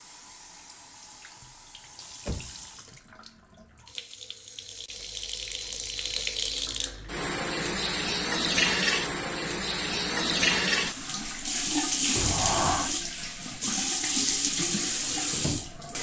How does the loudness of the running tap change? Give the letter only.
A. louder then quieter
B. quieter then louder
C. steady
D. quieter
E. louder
E.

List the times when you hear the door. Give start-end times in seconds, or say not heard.
1.9-2.6, 12.2-12.9.